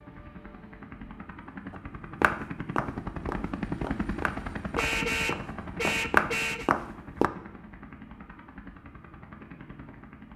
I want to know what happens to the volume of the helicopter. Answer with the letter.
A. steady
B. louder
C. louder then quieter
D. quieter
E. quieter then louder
C.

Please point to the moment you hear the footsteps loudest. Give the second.
6 s.